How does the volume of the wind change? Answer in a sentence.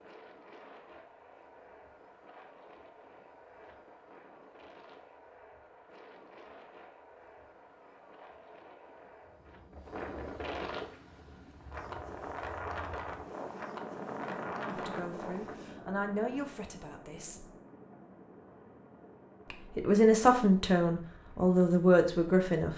The loudness of the wind goes up.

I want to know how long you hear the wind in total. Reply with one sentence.
You can hear the wind for 16 seconds altogether.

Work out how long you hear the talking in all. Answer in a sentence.
The talking can be heard for 6 seconds in total.